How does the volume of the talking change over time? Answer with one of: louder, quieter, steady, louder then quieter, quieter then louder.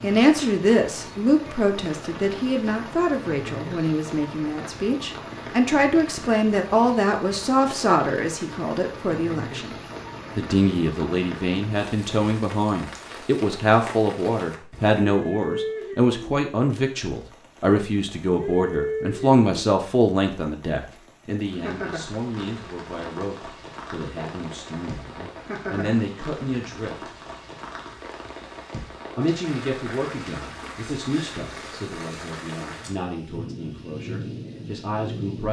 quieter.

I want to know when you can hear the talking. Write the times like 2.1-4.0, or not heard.
0.0-9.8, 10.3-27.1, 29.1-35.4.